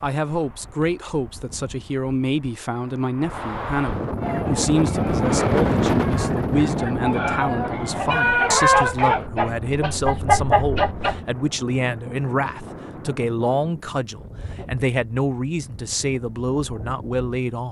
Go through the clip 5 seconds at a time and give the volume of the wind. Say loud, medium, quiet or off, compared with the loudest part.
medium, loud, quiet, quiet.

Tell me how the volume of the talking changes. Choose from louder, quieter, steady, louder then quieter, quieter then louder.
steady.